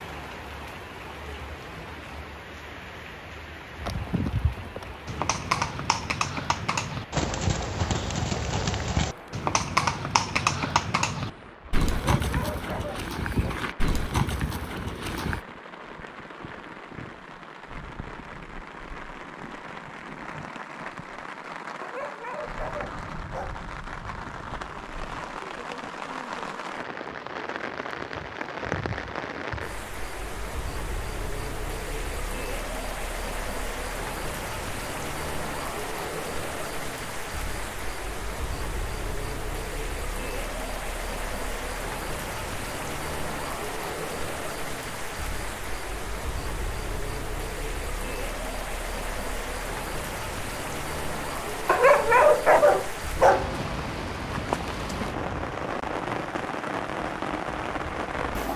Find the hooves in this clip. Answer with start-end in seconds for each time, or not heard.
3.8-15.4.